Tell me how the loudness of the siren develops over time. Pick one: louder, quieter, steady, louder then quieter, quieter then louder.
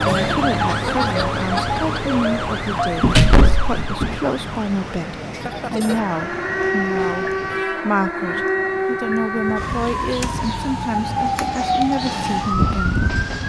quieter then louder.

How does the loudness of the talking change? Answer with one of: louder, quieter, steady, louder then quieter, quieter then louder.
steady.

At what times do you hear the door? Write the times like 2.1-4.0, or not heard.
3.0-4.2.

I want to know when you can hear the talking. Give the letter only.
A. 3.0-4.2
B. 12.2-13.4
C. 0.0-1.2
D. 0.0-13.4
D.